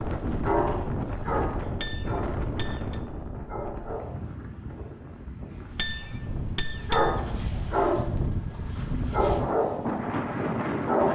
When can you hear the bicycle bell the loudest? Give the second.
7 s.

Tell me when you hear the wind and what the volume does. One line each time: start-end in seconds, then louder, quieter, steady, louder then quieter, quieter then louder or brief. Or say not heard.
0.0-11.1 quieter then louder.